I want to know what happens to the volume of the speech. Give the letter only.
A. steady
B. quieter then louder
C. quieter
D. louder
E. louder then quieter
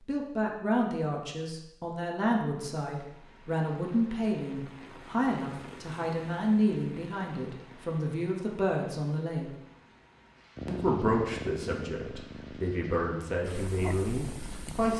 A.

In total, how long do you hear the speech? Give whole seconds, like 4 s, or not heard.
14 s.